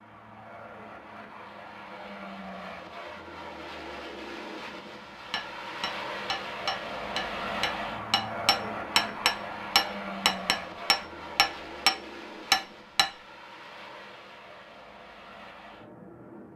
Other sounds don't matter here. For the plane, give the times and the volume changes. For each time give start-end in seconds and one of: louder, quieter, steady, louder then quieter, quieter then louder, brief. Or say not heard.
0.0-16.5 louder then quieter.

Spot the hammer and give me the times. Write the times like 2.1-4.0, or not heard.
5.3-11.9, 12.5-13.1.